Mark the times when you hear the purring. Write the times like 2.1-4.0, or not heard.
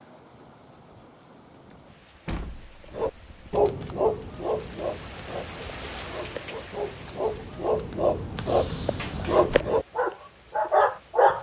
not heard.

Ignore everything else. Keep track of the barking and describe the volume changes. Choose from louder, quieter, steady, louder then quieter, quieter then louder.
quieter then louder.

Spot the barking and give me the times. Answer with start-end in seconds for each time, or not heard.
2.9-11.3.